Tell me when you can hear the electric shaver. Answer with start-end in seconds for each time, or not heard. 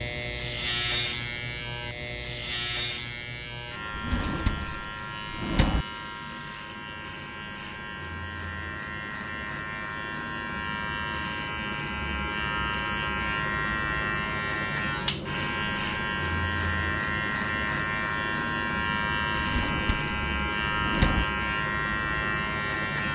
0.0-23.1.